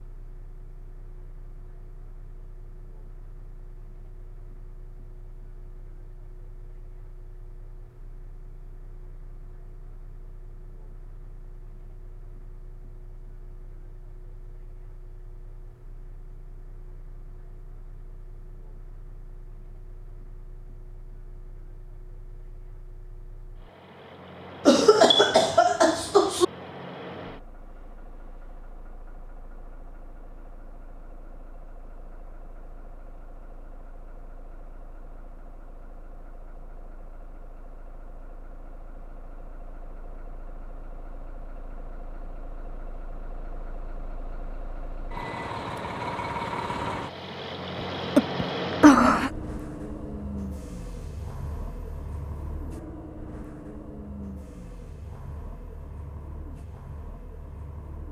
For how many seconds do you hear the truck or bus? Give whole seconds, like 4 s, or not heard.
58 s.